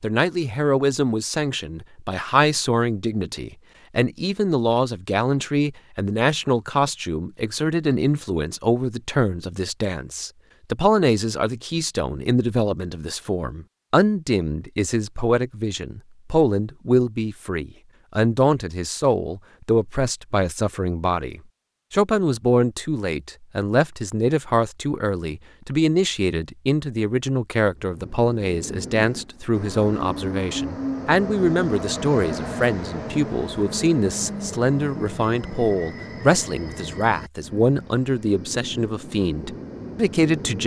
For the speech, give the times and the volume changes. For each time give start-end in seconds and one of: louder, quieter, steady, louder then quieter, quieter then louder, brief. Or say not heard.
0.0-40.6 steady.